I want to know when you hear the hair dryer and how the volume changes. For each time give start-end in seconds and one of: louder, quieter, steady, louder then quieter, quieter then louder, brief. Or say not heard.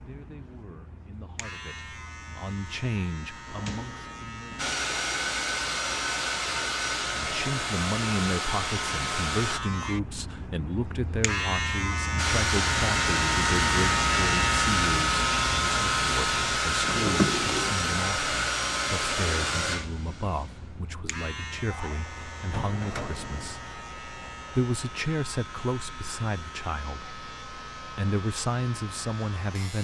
4.5-9.6 steady
12.2-29.8 quieter.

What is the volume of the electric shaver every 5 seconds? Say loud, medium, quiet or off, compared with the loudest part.
quiet, medium, loud, loud, quiet, quiet.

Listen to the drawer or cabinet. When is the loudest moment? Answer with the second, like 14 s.
17 s.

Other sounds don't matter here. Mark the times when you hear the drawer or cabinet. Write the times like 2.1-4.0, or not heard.
3.5-4.8, 16.8-17.8, 22.5-23.6.